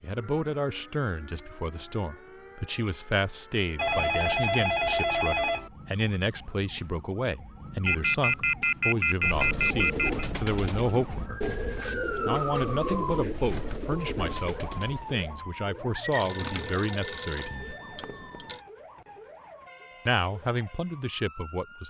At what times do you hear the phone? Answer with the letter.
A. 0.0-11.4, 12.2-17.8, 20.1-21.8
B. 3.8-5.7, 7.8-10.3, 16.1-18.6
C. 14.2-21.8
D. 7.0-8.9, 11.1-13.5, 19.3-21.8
B.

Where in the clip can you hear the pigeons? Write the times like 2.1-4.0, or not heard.
9.2-16.9.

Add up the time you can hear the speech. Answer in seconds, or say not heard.
19 s.